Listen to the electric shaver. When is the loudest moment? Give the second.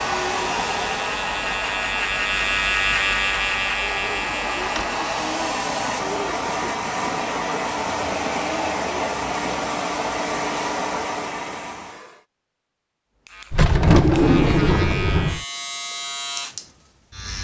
3 s.